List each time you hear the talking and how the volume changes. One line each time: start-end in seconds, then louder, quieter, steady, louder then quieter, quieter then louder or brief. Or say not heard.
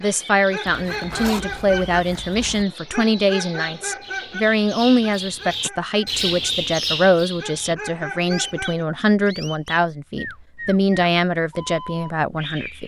0.0-12.8 steady.